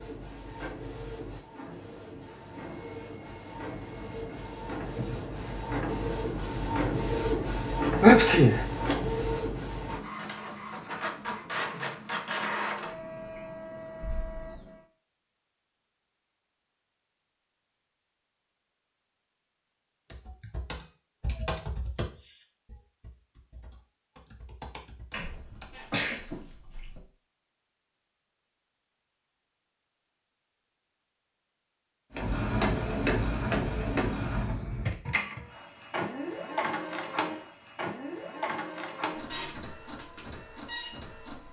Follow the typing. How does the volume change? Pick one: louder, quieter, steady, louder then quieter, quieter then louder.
quieter then louder.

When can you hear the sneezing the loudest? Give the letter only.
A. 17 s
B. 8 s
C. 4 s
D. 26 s
B.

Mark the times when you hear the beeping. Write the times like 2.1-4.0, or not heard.
2.5-4.6.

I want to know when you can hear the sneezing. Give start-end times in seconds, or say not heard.
8.0-8.7, 25.1-27.0.